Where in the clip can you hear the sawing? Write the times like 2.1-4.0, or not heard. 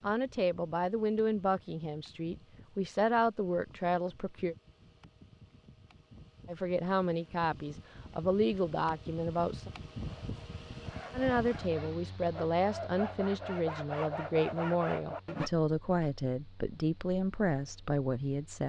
10.0-15.5.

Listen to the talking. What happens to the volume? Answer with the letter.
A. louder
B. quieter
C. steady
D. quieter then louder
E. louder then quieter
C.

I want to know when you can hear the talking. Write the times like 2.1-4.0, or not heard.
0.0-4.5, 6.5-9.7, 11.1-18.6.